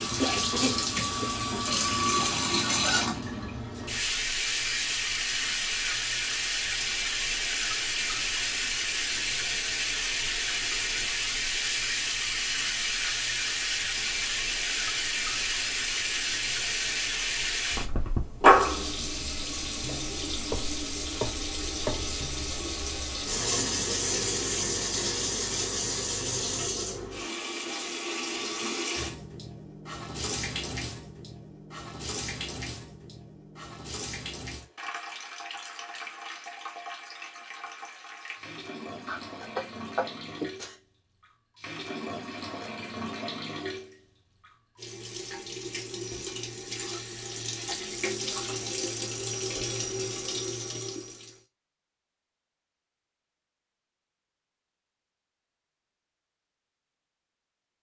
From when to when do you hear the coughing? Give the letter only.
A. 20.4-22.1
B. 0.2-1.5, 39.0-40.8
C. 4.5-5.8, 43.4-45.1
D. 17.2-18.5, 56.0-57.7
B.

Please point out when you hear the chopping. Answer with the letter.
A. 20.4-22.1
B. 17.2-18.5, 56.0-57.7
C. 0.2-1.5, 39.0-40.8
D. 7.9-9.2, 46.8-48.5
A.